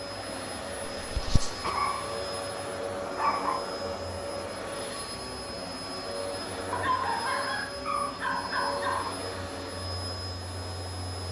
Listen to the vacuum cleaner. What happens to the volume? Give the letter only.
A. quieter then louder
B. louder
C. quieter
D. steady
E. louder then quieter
D.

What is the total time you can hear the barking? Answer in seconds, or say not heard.
4 s.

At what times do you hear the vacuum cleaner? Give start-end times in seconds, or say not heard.
0.0-11.2.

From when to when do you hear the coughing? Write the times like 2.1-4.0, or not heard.
0.9-1.7.